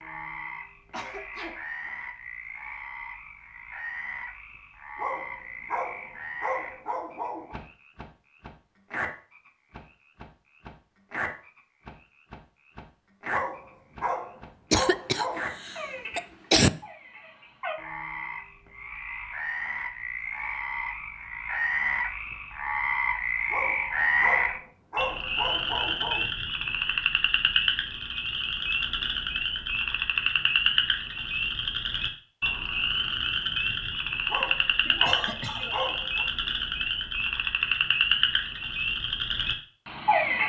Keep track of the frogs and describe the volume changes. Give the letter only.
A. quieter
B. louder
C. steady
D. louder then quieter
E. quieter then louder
B.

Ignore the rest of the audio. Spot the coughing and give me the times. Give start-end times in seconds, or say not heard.
0.9-1.6, 14.7-16.7, 34.4-35.8.